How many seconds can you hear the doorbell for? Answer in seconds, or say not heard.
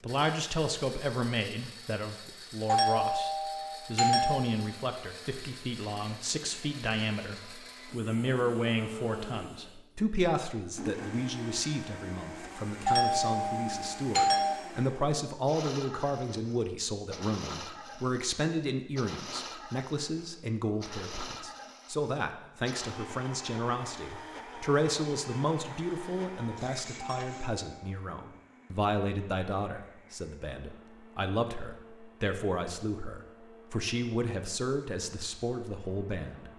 4 s.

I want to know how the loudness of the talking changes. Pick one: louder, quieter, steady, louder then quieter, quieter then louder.
steady.